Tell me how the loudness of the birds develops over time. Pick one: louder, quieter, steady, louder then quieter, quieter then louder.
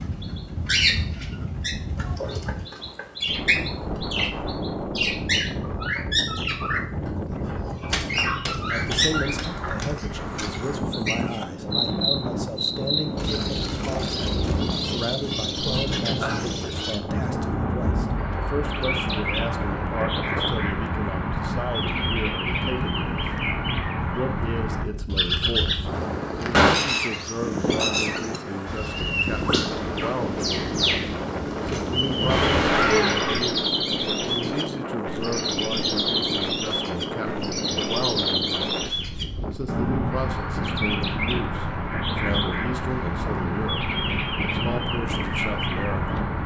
steady.